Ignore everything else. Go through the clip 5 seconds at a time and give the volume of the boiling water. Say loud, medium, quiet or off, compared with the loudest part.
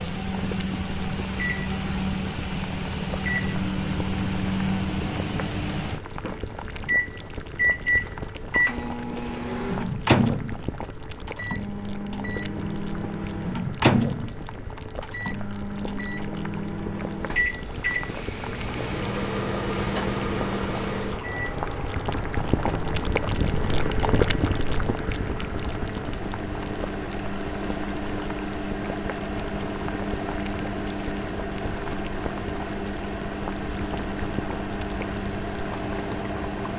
medium, medium, medium, medium, loud, medium, medium, medium.